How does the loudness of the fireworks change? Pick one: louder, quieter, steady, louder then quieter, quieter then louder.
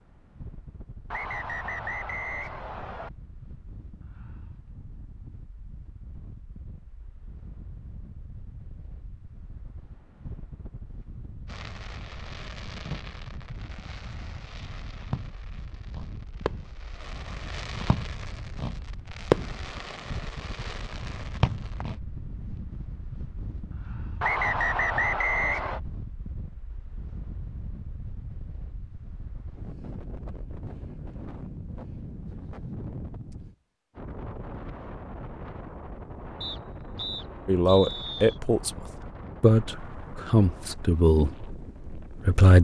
louder then quieter.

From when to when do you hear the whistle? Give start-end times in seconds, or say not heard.
1.1-3.1, 24.2-25.8, 36.4-38.4.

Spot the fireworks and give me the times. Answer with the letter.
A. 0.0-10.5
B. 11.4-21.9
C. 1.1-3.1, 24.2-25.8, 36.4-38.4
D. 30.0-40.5
B.